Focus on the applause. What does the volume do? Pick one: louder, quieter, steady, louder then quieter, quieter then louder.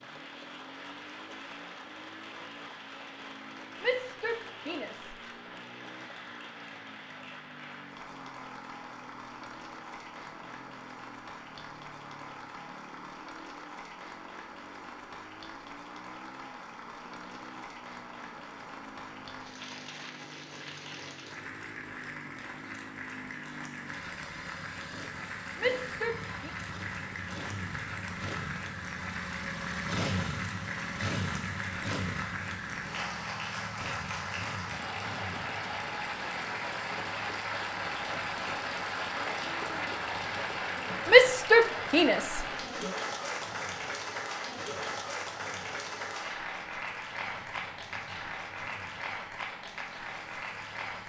louder.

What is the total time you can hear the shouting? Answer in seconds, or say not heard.
4 s.